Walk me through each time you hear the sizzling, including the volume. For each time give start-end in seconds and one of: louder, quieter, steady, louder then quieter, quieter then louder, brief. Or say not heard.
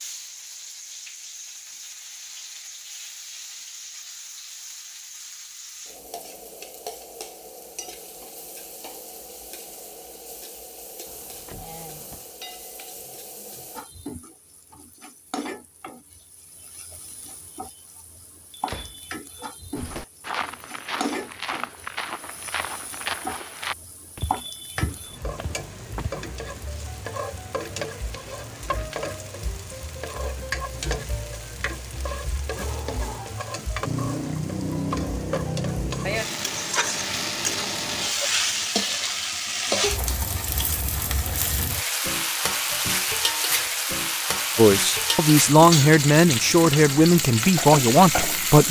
0.0-48.6 louder.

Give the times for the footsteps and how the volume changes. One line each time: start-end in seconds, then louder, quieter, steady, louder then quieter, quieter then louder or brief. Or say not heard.
19.8-26.1 steady.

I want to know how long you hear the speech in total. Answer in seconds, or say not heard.
4 s.